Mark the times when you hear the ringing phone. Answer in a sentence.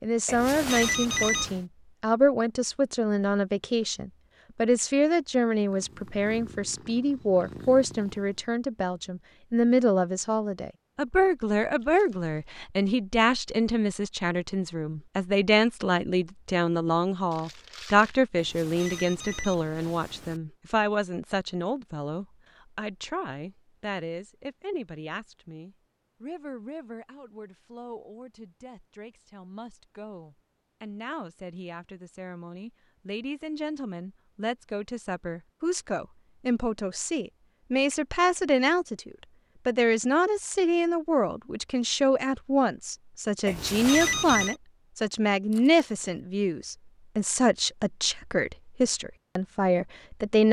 The ringing phone can be heard from 0.2 to 1.6 s, from 18.4 to 20.4 s and from 43.5 to 44.5 s.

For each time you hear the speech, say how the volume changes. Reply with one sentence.
The speech can be heard from 0.0 to 50.4 s, getting quieter then louder.